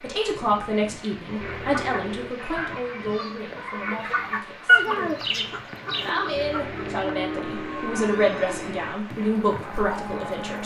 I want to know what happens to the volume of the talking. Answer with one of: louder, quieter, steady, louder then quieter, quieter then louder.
quieter then louder.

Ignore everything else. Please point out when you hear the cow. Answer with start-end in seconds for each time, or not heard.
5.8-10.6.